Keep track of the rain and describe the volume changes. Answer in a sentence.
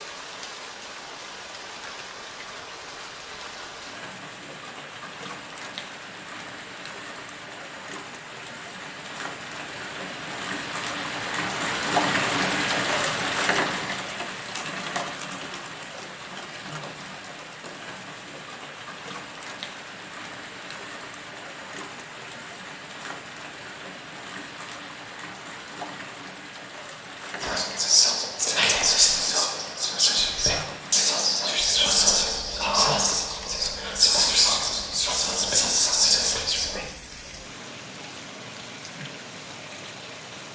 The volume of the rain goes up, then down.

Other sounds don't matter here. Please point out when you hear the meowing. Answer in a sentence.
You can't hear the meowing here.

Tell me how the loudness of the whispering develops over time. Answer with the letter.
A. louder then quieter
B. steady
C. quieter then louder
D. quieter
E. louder
B.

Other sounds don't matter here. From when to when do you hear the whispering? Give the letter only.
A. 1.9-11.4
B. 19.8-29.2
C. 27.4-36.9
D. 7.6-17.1
C.